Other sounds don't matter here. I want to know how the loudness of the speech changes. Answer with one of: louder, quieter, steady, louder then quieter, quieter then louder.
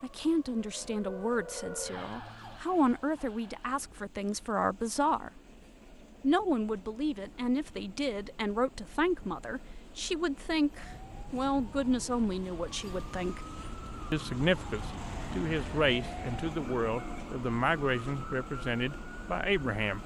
steady.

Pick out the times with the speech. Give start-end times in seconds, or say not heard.
0.0-5.3, 6.2-13.4, 14.1-20.0.